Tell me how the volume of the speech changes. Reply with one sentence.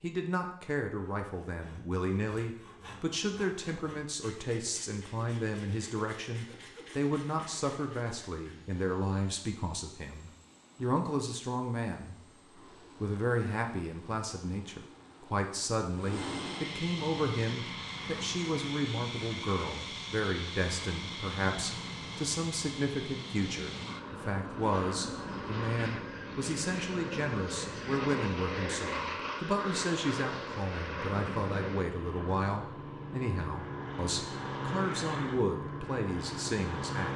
The volume of the speech stays about the same.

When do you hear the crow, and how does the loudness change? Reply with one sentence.
You can't hear the crow here.